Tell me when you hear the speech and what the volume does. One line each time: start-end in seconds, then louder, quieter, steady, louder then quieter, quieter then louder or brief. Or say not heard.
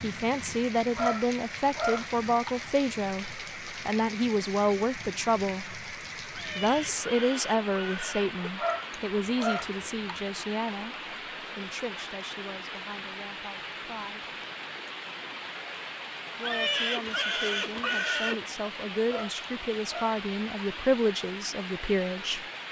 0.0-14.2 quieter
16.4-22.4 louder.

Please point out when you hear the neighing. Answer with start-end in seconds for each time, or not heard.
6.3-8.5, 16.4-18.4.